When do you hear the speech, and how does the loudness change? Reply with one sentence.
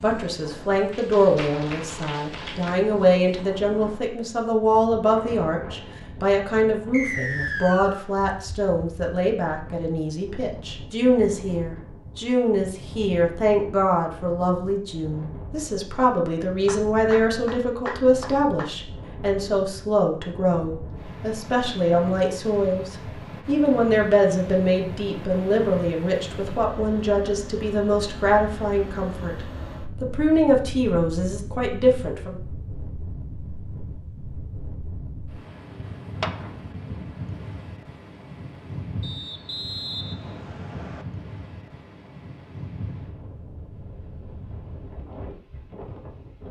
You can hear the speech from 0.0 to 32.4 s, at a steady volume.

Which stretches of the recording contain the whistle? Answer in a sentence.
You can hear the whistle from 6.9 to 8.1 s and from 39.0 to 41.0 s.